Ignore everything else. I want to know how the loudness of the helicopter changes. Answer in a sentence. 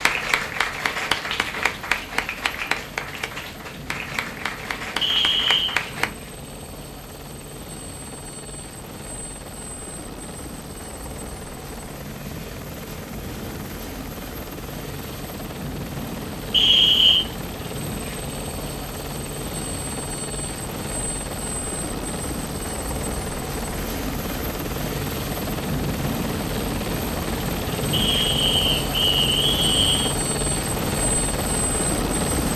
The volume of the helicopter goes up.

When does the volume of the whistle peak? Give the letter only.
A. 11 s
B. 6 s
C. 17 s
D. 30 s
C.